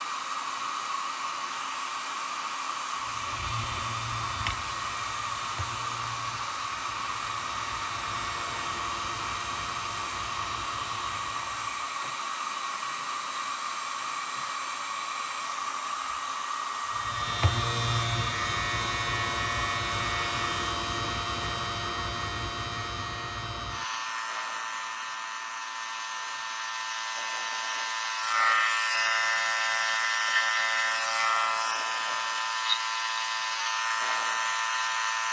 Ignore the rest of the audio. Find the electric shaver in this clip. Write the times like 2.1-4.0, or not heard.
3.0-11.9, 16.9-35.2.